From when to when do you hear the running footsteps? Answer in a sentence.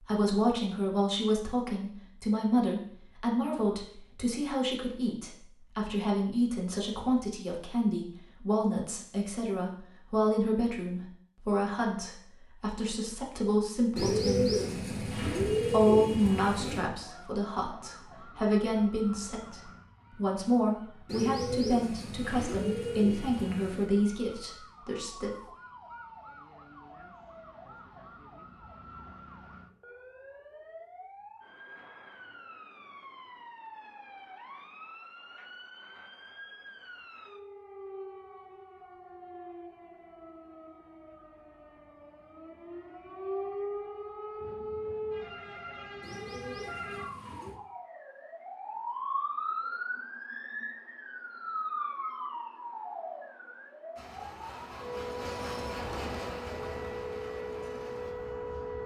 The running footsteps can't be heard in this clip.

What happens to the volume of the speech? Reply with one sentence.
The volume of the speech stays about the same.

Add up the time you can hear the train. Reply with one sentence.
The train can be heard for 5 seconds in total.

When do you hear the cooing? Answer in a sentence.
The cooing can be heard from 13.9 to 16.9 s, from 21.1 to 23.9 s and from 46.0 to 47.6 s.